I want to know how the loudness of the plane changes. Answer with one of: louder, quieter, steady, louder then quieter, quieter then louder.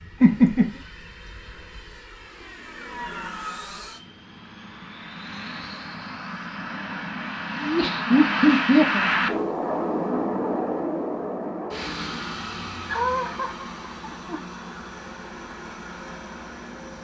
louder then quieter.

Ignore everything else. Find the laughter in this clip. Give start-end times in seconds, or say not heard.
0.2-0.7, 7.6-9.1, 12.8-14.4.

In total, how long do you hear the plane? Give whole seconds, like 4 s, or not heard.
17 s.